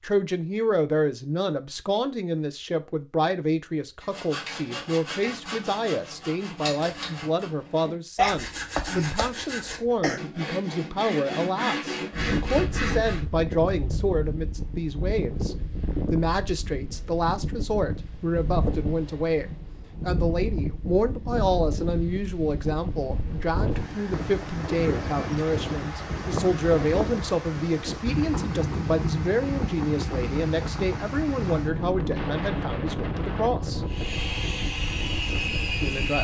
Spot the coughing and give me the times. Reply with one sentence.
You can hear the coughing from 8.2 to 10.2 s.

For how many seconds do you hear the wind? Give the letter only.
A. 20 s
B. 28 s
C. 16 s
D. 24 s
D.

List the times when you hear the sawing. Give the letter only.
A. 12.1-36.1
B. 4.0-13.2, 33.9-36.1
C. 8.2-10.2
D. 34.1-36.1
B.